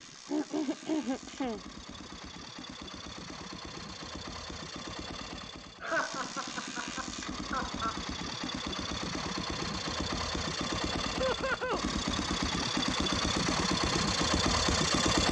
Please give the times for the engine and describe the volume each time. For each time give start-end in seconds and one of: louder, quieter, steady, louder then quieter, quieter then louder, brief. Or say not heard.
0.0-15.2 louder.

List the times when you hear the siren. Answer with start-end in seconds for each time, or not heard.
not heard.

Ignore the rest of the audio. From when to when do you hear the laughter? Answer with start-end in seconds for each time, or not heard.
0.2-2.2, 5.8-8.0, 11.2-11.8.